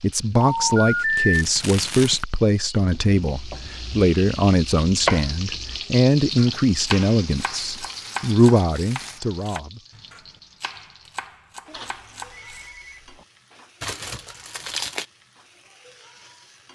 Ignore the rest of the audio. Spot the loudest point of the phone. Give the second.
1 s.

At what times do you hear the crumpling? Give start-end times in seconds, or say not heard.
1.3-2.2, 7.5-9.2, 13.8-15.1.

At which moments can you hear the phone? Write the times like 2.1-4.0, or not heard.
0.3-1.4, 7.3-8.1, 11.7-13.2.